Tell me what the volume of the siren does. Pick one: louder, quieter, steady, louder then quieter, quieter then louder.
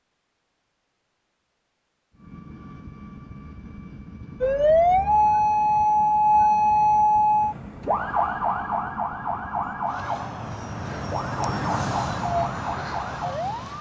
quieter.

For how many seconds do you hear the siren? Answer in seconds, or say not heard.
9 s.